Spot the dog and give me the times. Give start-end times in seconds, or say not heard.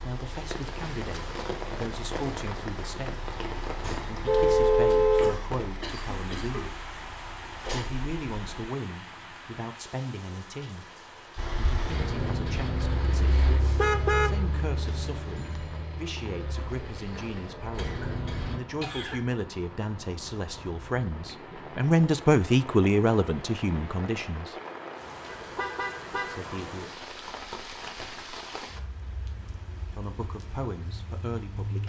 not heard.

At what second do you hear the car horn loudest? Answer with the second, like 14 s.
5 s.